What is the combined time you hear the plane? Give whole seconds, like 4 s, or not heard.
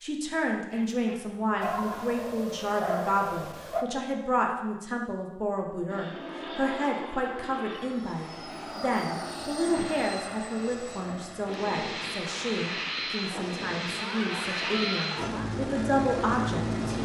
11 s.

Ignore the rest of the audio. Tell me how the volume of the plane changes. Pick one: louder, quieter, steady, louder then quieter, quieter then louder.
louder.